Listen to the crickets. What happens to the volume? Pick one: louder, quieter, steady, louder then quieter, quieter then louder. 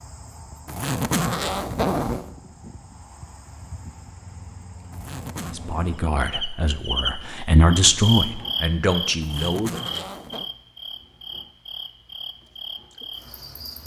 louder then quieter.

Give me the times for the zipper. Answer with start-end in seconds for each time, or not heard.
0.7-2.3, 4.9-5.5, 9.2-10.5.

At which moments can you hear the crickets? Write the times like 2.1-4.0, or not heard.
0.0-13.8.